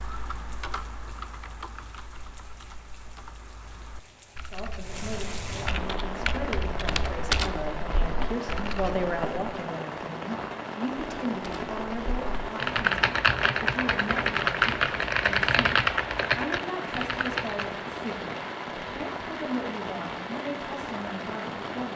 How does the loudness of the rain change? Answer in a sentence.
The loudness of the rain goes up.